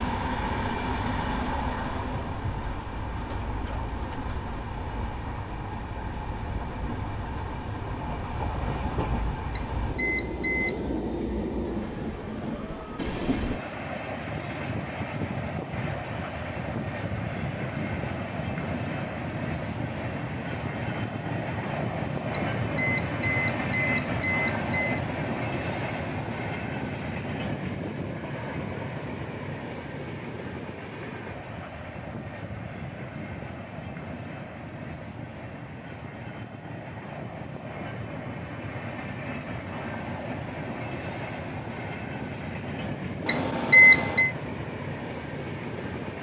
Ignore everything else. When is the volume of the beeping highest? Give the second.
44 s.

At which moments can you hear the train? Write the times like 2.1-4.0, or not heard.
0.0-46.1.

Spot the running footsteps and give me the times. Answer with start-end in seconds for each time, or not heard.
not heard.